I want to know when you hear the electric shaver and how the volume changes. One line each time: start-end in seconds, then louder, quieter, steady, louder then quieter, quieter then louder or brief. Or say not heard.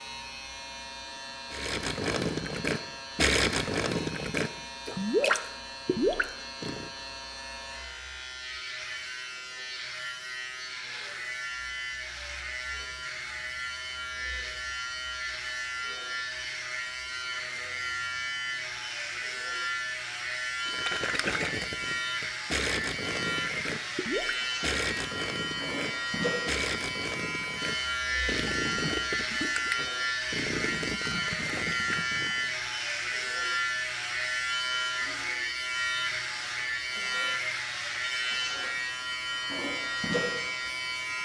0.0-41.2 louder.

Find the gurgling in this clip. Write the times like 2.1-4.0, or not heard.
1.5-6.9, 20.6-32.5.